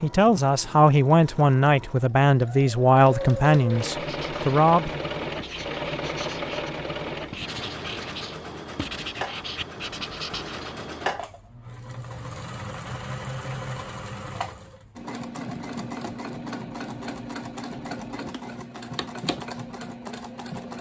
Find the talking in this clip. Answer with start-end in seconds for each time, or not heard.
0.0-5.0.